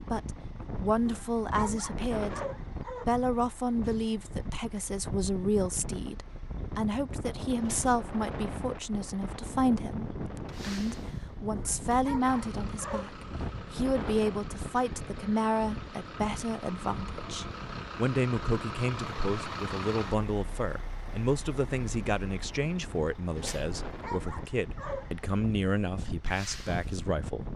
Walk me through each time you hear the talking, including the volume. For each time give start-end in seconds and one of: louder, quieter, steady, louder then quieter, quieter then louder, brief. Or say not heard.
0.0-2.4 brief
3.0-27.5 steady.